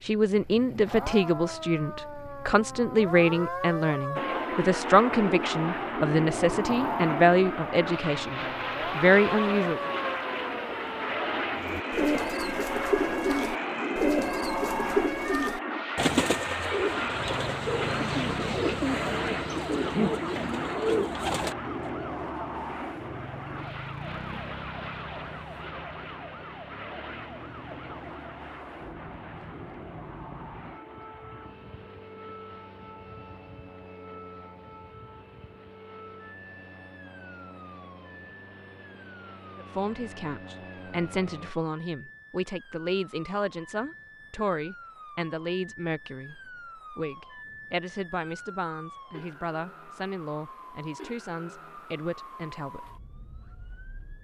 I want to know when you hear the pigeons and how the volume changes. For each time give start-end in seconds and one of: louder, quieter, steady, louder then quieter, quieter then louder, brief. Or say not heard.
11.6-21.6 steady.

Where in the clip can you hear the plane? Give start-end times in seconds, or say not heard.
4.2-41.5.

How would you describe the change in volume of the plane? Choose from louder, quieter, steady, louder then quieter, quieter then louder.
quieter.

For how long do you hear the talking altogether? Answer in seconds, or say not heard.
23 s.